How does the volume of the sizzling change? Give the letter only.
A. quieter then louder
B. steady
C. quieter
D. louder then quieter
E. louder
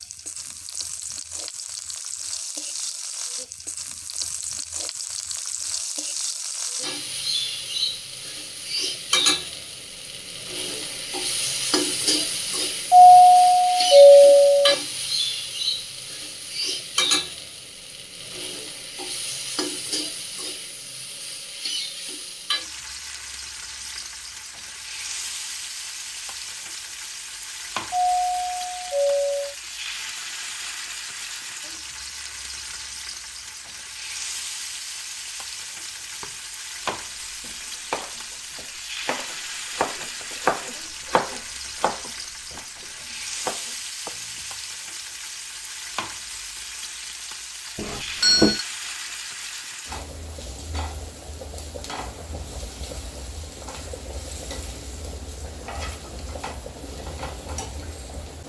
C.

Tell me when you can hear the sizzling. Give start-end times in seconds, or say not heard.
0.0-58.4.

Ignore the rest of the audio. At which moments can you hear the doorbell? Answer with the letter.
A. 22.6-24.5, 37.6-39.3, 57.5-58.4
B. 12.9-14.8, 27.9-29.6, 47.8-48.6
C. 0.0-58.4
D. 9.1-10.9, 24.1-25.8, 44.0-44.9
B.